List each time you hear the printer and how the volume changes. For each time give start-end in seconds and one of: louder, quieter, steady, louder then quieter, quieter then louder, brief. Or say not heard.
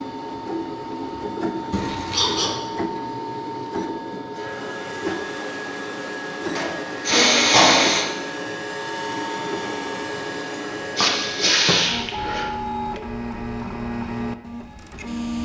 0.0-15.4 steady.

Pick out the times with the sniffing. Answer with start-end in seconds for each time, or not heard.
1.7-2.6, 6.5-8.1, 10.7-12.4.